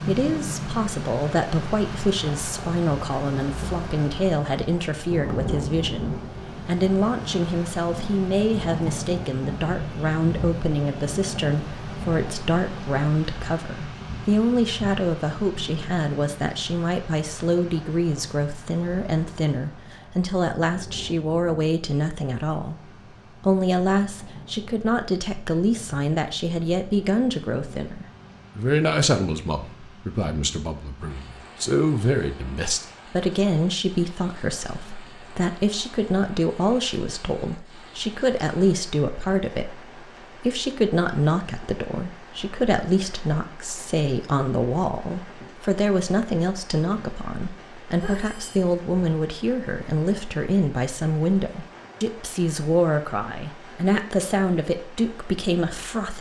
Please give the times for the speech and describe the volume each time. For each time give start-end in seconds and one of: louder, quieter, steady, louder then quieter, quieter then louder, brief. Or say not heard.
0.0-56.1 steady.